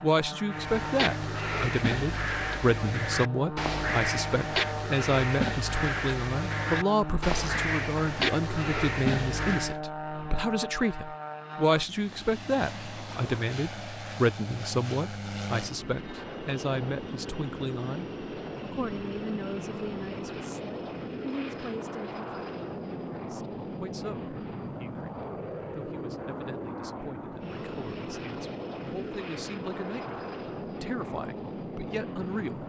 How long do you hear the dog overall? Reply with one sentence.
The dog can't be heard in this clip.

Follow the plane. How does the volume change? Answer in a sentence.
The loudness of the plane stays about the same.